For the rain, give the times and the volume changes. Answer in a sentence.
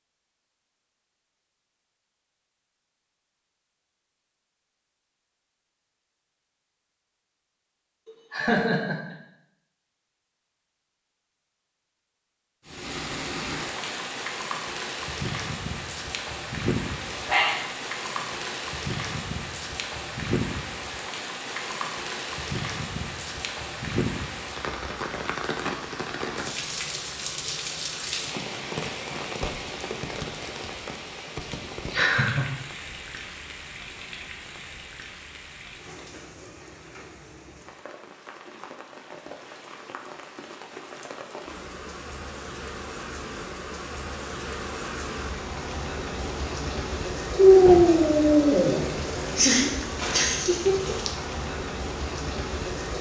You can hear the rain from 12.7 to 52.9 s, getting quieter then louder.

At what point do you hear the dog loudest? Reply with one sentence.
The loudest moment of the dog is at 48 seconds.